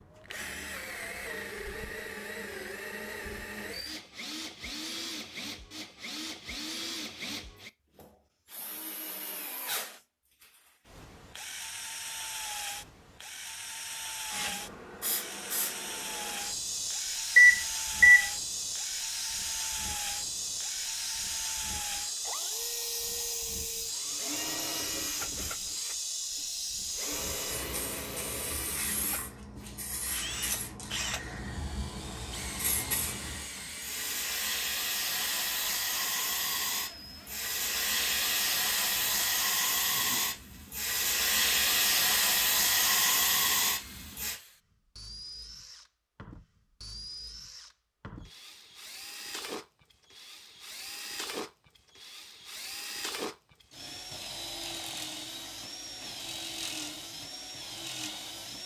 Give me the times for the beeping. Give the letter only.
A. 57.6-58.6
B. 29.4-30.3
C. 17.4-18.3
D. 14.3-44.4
C.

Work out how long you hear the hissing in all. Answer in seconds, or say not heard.
30 s.